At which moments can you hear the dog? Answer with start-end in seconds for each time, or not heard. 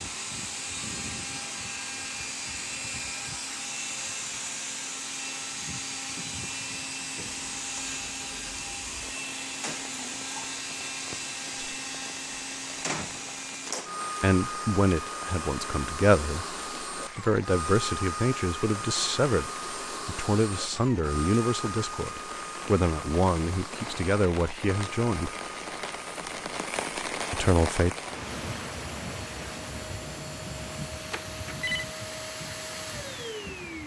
not heard.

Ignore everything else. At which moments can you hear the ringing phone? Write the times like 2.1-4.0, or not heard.
31.1-31.9.